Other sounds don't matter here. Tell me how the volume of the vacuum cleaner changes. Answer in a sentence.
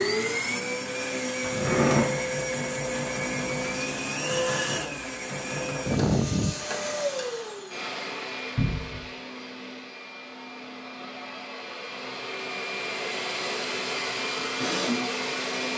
The loudness of the vacuum cleaner goes down, then up.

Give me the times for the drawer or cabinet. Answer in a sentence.
You can hear the drawer or cabinet from 1.4 to 2.1 s and from 8.6 to 9.1 s.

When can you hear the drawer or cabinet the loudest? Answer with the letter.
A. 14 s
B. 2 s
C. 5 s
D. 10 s
B.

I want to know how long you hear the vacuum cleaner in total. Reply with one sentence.
The vacuum cleaner can be heard for 16 seconds in total.